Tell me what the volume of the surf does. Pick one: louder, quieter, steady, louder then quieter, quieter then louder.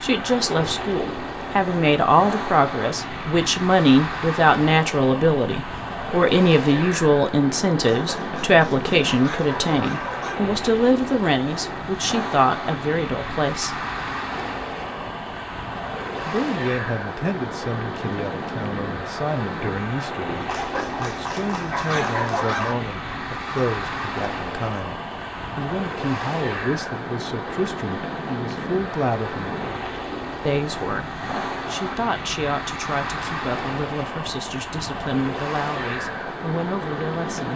steady.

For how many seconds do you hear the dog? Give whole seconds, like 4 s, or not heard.
5 s.